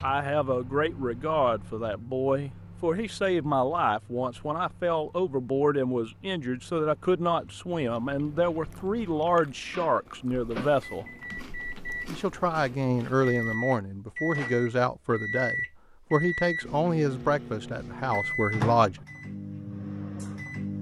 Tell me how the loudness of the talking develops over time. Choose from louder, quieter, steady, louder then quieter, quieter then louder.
steady.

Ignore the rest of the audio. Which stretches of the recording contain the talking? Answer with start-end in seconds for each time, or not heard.
0.0-11.1, 12.1-19.1.